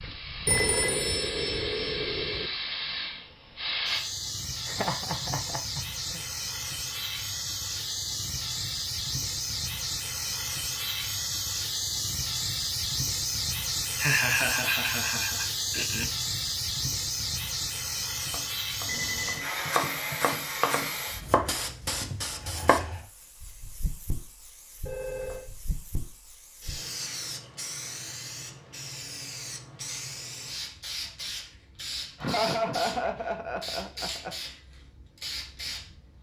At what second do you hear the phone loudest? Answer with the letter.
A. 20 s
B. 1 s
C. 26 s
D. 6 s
B.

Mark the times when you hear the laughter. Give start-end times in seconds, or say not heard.
4.7-6.2, 13.9-16.1, 32.2-34.3.